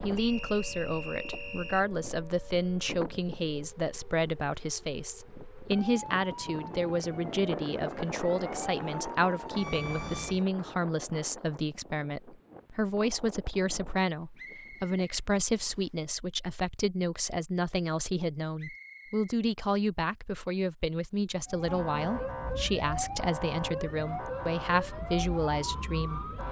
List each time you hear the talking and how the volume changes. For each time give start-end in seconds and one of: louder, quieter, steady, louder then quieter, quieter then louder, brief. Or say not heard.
0.0-26.3 steady.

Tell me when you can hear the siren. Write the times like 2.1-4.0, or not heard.
0.0-10.4, 21.4-26.4.